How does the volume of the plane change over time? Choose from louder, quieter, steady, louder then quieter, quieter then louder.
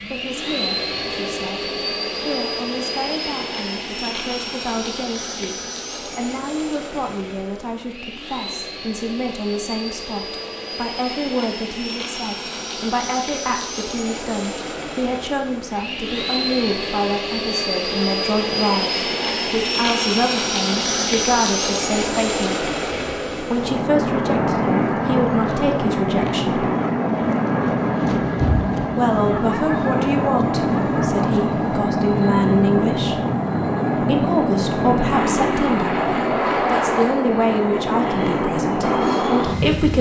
louder.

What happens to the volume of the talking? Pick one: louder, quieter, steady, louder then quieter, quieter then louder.
louder.